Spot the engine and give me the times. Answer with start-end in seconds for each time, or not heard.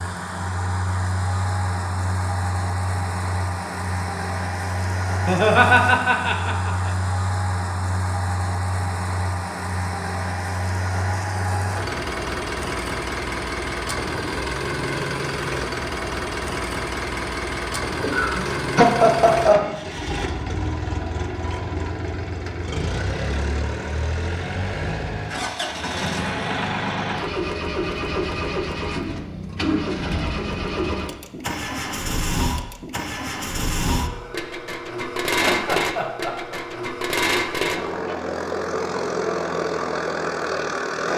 0.0-41.1.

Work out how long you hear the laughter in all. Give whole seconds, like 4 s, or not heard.
5 s.